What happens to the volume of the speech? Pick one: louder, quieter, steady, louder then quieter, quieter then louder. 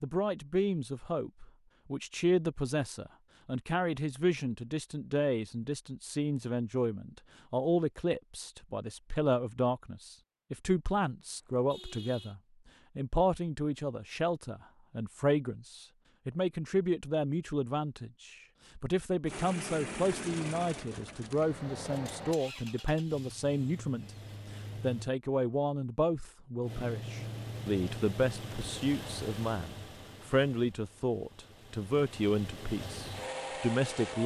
steady.